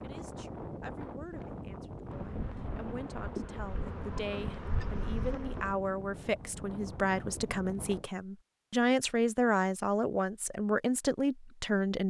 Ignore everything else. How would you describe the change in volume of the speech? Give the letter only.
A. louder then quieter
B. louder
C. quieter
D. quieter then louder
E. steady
B.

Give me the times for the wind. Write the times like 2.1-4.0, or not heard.
0.0-8.1.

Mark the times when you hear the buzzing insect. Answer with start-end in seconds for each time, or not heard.
2.0-5.8.